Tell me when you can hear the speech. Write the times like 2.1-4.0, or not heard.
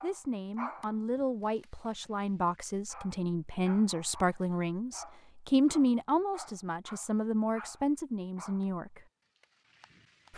0.0-9.1.